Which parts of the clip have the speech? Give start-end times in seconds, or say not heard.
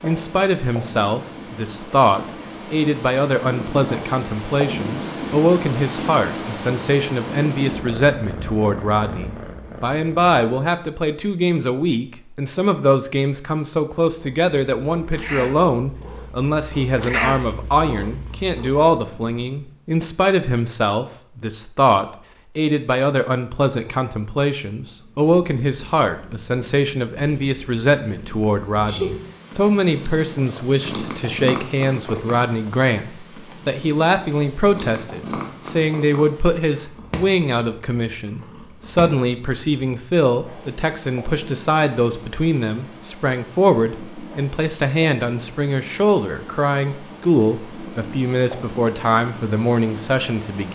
0.0-50.7.